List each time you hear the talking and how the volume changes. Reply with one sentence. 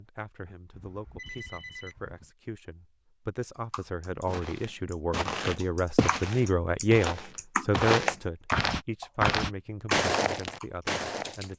You can hear the talking from 0.0 to 11.5 s, getting louder then quieter.